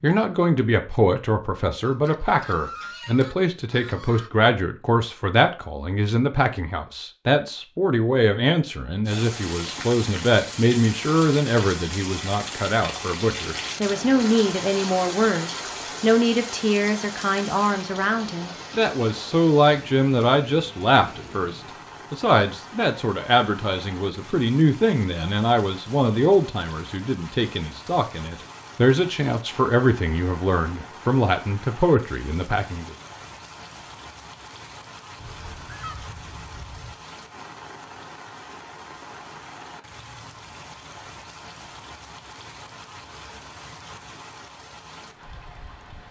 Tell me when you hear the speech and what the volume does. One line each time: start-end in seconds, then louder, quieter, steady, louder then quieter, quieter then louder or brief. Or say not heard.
0.0-33.0 steady.